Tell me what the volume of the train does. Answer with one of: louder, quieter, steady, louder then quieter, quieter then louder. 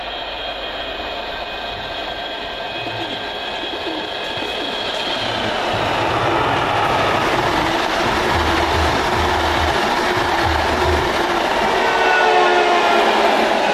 louder.